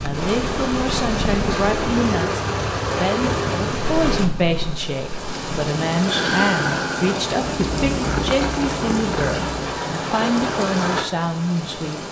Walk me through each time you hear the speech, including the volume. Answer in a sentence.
You can hear the speech from 0.0 to 12.0 s, at a steady volume.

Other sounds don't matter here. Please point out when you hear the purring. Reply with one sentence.
The purring can be heard from 0.0 to 9.8 s.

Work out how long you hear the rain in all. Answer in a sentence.
The rain can be heard for 12 seconds in total.